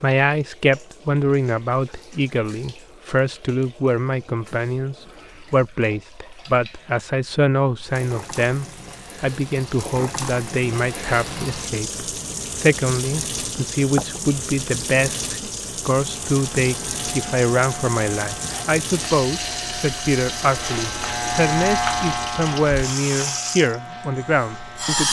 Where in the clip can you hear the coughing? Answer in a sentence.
The coughing can't be heard in this clip.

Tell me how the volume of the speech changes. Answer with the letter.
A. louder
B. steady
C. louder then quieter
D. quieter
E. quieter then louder
B.